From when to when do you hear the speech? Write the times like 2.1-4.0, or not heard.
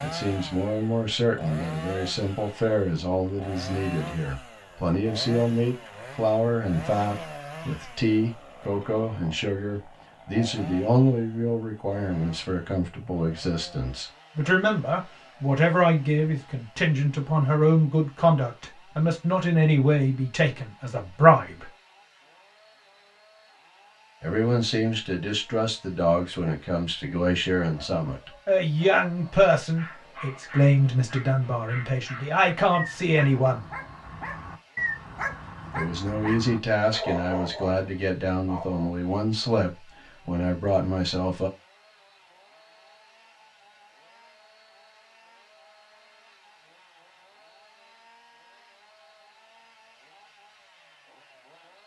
0.0-21.7, 24.2-33.6, 35.8-41.5.